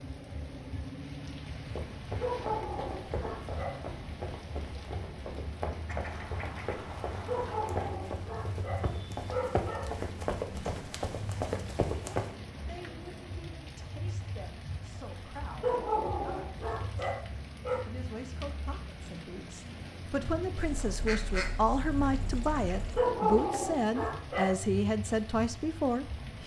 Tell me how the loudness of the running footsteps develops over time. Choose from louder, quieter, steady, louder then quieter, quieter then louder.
louder.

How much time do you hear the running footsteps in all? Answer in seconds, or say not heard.
11 s.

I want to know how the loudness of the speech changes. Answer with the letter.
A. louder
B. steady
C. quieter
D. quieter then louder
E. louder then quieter
A.